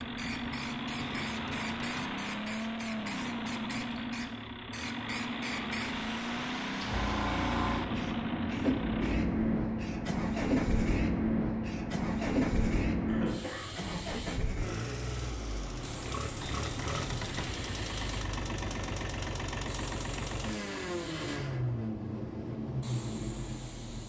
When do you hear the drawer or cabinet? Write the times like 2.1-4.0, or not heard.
0.9-2.1, 16.4-17.6.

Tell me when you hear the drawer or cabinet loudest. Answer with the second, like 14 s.
17 s.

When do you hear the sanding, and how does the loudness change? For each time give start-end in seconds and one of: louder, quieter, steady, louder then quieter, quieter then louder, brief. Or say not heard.
not heard.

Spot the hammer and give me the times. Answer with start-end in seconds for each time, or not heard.
not heard.